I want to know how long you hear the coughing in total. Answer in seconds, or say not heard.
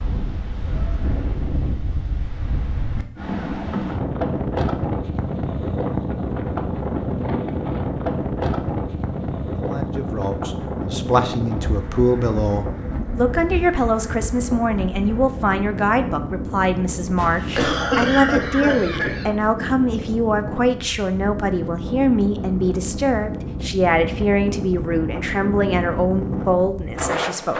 2 s.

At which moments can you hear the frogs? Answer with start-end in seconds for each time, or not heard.
not heard.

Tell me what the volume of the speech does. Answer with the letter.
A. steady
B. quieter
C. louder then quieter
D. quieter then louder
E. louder
A.